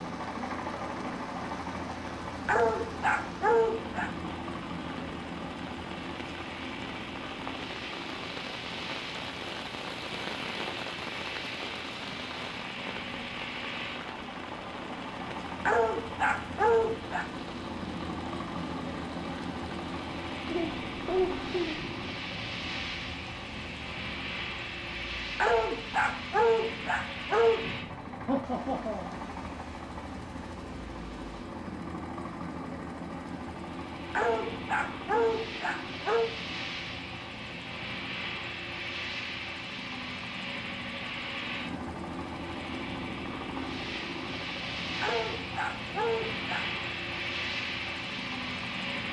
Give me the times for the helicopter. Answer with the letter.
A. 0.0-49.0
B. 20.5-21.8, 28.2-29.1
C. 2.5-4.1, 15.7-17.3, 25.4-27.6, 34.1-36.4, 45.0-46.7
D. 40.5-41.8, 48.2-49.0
A.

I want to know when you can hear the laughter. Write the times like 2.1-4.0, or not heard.
20.5-21.8, 28.2-29.1.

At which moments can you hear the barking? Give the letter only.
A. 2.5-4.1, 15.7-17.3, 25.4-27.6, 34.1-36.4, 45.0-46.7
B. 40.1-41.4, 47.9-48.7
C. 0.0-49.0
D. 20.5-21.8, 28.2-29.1
A.